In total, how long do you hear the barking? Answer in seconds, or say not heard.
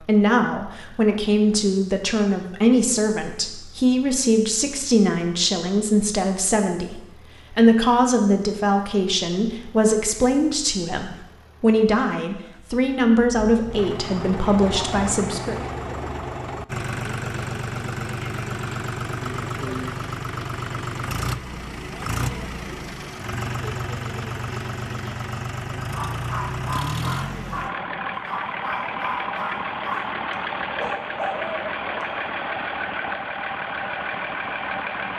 6 s.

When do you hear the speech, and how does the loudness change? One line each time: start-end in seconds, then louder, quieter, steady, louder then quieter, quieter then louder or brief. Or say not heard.
0.1-15.6 steady.